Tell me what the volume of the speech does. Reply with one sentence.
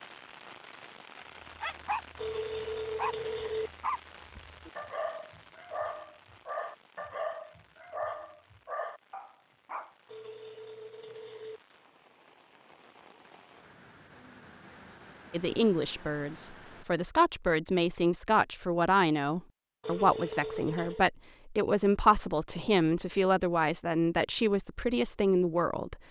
The volume of the speech stays about the same.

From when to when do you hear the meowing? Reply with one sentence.
You can't hear the meowing here.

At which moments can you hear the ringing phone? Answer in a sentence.
You can hear the ringing phone from 2.1 to 3.7 s, from 10.1 to 11.6 s and from 19.8 to 21.1 s.